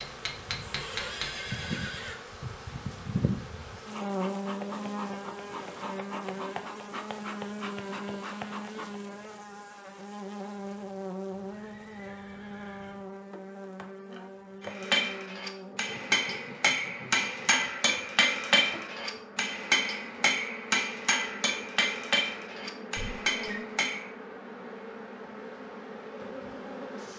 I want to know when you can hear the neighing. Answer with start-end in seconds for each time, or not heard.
0.6-2.1, 11.3-13.1, 22.9-23.6.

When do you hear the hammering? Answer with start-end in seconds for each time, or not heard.
0.0-1.4, 14.6-24.1.